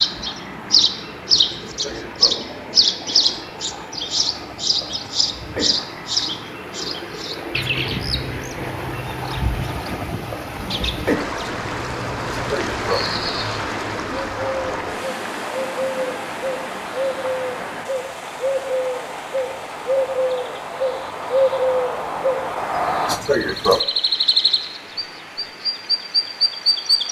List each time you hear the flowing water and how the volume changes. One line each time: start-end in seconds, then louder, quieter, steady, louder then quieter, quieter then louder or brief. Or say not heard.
0.0-27.0 louder then quieter.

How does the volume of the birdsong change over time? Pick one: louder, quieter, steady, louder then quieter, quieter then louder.
quieter then louder.